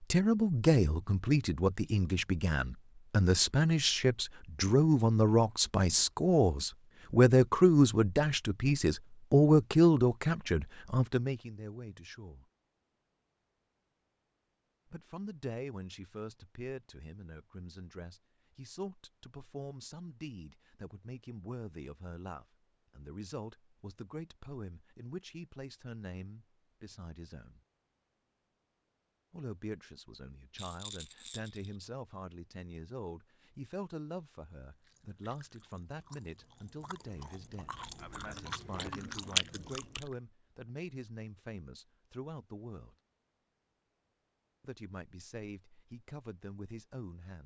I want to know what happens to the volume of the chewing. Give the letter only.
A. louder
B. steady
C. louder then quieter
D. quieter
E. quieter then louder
A.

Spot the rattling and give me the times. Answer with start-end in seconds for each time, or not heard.
30.6-31.8.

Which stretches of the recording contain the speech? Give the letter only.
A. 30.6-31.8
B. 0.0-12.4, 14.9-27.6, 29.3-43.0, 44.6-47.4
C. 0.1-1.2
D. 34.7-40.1
B.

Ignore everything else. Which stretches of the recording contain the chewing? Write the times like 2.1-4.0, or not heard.
34.7-40.1.